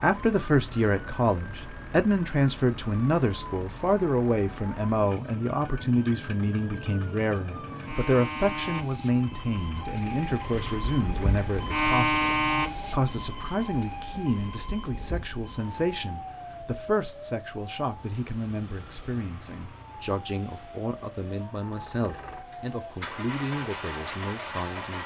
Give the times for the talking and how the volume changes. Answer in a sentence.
You can hear the talking from 0.0 to 25.0 s, getting quieter.